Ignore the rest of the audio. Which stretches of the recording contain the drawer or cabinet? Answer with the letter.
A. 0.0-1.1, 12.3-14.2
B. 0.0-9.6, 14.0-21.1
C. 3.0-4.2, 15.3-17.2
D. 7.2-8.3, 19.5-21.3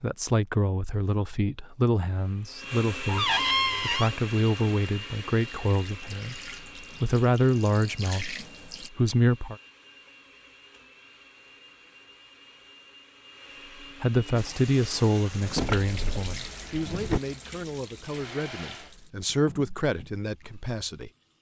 C.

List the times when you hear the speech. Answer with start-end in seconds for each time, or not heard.
0.0-9.6, 14.0-21.1.